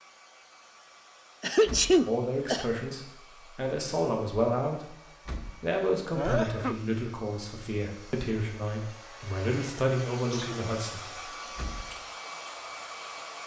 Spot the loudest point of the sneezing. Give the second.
2 s.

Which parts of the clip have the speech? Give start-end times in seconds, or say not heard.
2.0-11.9.